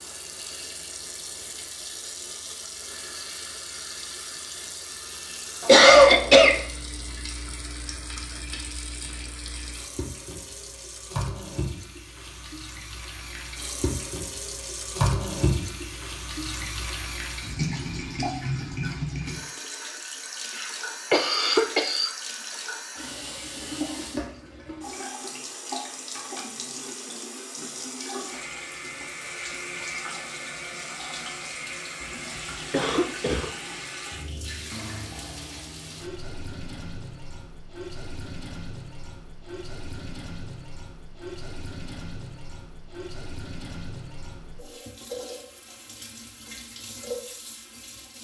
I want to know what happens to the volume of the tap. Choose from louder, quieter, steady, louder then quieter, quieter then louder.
louder then quieter.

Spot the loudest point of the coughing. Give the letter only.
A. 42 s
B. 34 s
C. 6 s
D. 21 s
C.